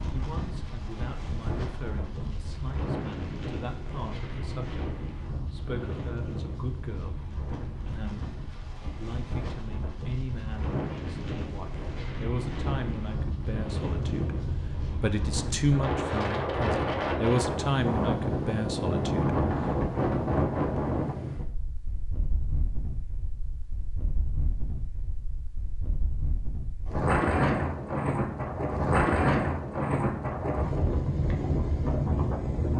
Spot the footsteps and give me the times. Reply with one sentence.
You can't hear the footsteps here.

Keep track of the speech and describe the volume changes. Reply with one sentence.
The volume of the speech goes up.